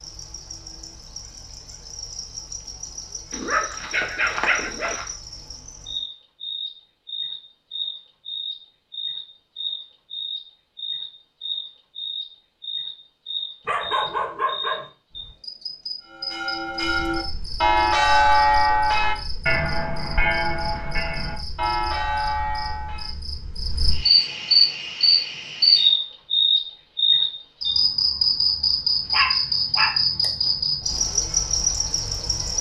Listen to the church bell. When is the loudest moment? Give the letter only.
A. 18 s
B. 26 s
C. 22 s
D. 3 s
A.